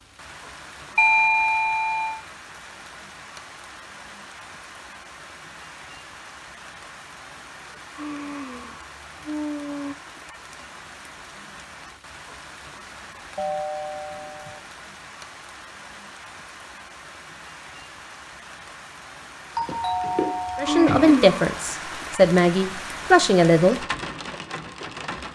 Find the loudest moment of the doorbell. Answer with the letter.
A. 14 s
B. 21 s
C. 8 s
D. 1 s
D.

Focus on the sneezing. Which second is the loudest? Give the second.
21 s.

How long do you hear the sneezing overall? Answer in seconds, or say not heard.
3 s.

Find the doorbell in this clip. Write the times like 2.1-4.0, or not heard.
0.9-2.2, 13.3-14.6, 19.6-21.1.